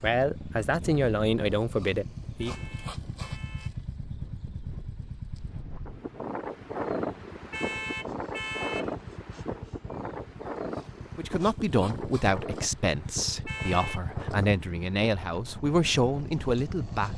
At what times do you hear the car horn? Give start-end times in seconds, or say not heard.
2.4-3.8, 7.5-8.9, 13.4-14.0.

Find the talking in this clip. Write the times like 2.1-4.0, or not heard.
0.0-2.6, 11.2-17.1.